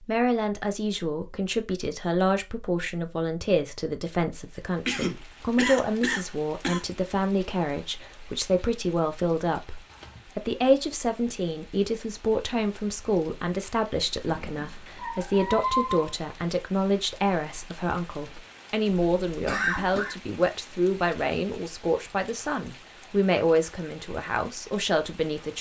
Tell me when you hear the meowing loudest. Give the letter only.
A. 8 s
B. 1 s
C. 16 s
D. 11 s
C.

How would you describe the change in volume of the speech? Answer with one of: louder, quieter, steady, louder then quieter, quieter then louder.
steady.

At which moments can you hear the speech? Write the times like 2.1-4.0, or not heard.
0.0-25.5.